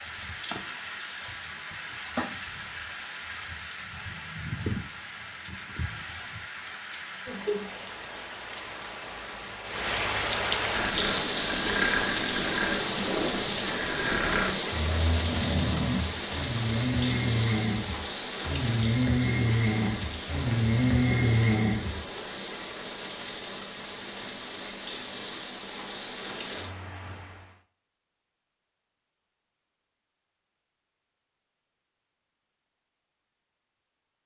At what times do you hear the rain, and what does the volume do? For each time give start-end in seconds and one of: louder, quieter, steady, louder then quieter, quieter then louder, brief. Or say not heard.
0.0-27.6 louder then quieter.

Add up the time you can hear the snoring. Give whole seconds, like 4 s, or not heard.
11 s.